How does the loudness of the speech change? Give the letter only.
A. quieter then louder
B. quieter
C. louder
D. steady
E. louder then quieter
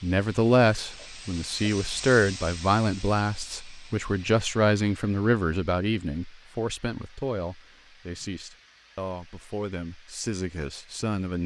B.